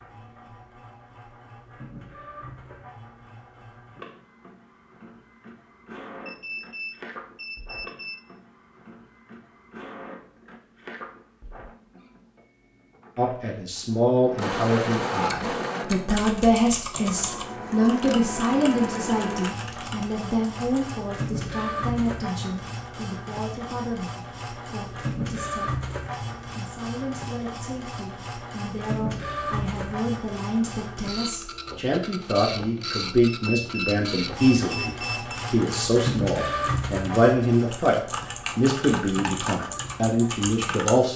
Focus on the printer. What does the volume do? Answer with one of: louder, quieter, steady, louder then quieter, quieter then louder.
louder.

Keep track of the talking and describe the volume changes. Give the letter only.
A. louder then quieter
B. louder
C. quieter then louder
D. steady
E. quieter
C.